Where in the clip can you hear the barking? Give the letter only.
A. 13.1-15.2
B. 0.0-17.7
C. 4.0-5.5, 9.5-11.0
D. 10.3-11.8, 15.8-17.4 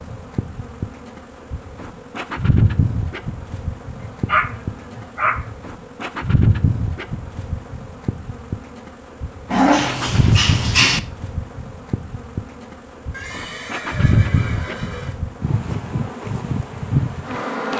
C.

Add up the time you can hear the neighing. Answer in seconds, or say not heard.
2 s.